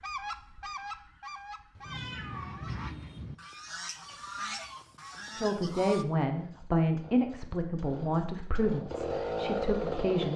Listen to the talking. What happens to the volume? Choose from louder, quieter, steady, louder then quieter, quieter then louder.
quieter.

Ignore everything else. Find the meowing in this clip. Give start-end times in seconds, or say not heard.
1.8-3.4.